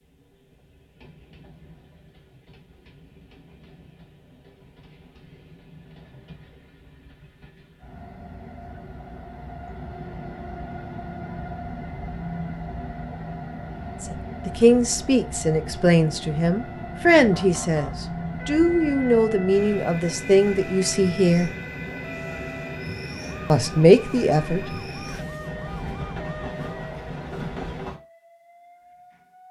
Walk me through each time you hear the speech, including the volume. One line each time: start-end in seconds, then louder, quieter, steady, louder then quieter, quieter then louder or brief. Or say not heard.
14.0-21.5 steady
23.5-24.6 brief.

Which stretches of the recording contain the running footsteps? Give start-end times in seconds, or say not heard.
not heard.